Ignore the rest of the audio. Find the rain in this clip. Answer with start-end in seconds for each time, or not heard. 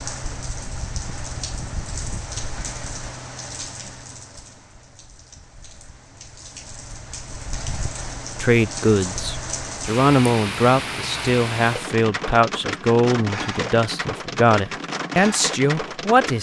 0.0-16.3.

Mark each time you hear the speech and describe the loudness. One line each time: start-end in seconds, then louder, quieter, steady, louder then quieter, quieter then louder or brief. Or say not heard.
8.4-16.3 steady.